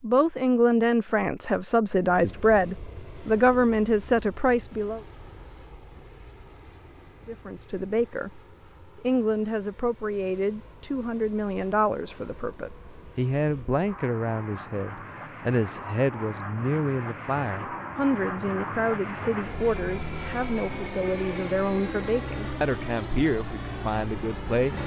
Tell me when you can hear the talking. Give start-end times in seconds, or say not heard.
0.0-5.0, 7.2-24.8.